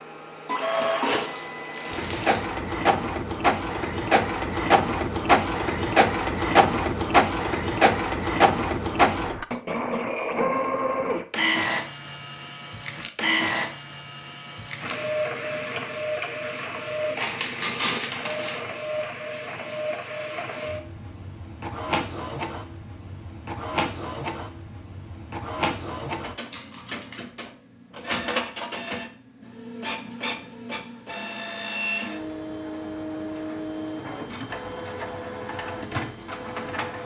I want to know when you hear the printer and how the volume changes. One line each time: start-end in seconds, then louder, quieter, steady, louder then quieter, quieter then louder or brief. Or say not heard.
0.0-37.0 quieter.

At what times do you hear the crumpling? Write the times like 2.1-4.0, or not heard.
0.8-2.5, 17.1-18.6, 26.5-27.1.